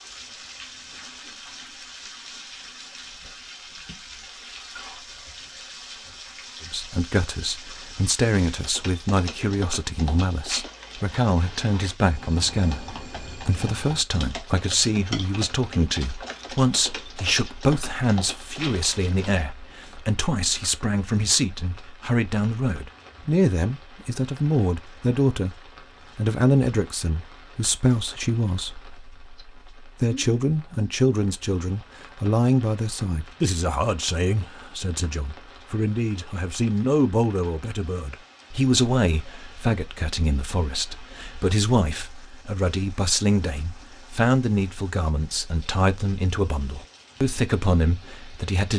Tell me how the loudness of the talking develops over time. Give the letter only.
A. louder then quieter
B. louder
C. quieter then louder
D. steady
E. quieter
D.